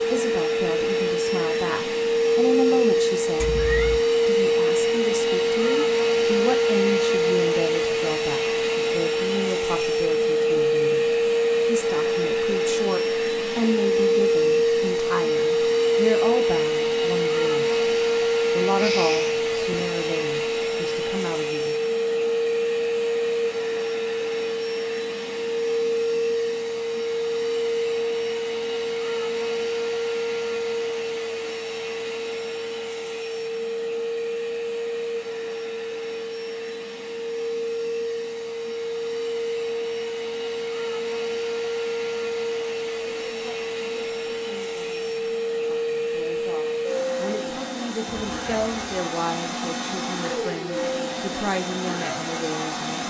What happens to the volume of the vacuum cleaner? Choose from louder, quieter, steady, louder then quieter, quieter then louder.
quieter.